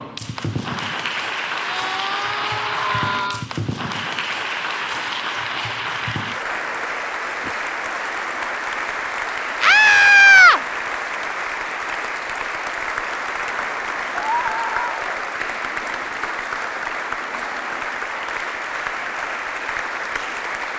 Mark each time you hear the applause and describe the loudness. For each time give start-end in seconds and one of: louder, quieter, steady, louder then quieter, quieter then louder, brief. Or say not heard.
0.0-20.7 steady.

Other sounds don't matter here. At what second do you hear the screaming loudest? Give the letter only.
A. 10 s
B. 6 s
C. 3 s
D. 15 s
A.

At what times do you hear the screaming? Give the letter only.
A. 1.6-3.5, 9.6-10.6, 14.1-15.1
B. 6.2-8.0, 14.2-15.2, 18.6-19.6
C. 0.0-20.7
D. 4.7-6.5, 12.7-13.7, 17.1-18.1
A.